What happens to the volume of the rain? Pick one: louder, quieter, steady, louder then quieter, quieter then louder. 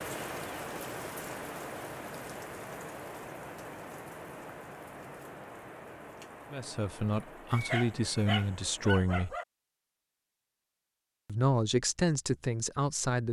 quieter.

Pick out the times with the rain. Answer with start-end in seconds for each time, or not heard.
0.0-9.0.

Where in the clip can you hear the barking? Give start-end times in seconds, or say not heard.
7.5-9.4.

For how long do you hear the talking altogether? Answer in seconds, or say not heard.
5 s.